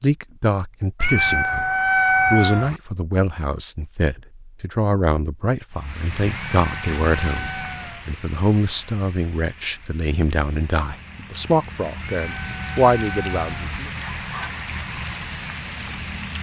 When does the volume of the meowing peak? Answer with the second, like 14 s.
2 s.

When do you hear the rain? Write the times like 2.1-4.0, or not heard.
5.7-16.3.